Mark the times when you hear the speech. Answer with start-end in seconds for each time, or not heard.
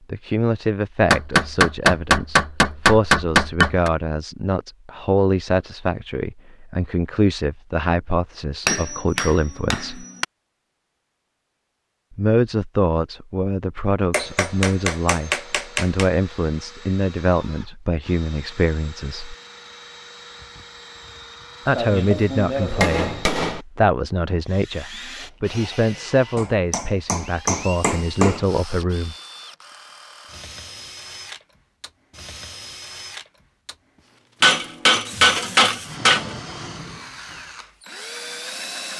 0.1-10.1, 12.2-19.4, 21.6-29.1.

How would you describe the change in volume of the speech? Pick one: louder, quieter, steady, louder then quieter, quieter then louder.
steady.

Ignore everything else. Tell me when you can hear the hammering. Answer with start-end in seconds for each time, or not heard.
1.1-3.9, 8.7-10.2, 14.1-16.1, 21.8-23.6, 26.4-28.4, 34.4-36.4.